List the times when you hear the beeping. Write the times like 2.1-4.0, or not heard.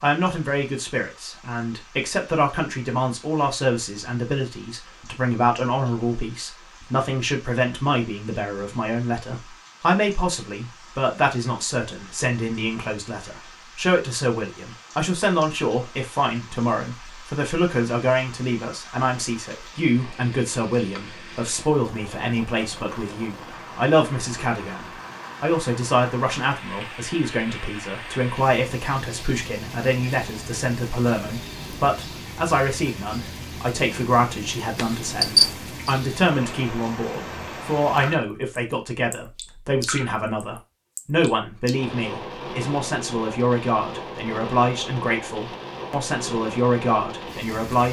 34.8-35.9.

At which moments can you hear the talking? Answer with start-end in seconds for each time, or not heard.
0.0-47.8.